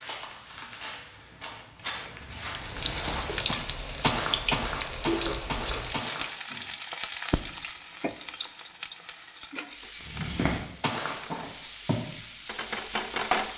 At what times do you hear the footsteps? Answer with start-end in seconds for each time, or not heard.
0.0-6.7, 10.0-12.0.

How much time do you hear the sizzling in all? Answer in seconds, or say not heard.
11 s.